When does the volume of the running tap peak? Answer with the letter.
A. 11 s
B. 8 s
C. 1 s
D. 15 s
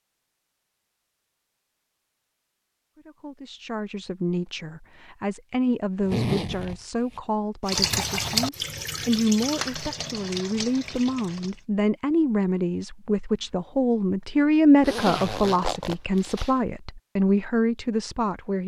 B.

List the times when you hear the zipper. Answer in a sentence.
You can hear the zipper from 6.0 to 7.2 s and from 14.8 to 16.5 s.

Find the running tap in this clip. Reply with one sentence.
You can hear the running tap from 7.7 to 11.7 s.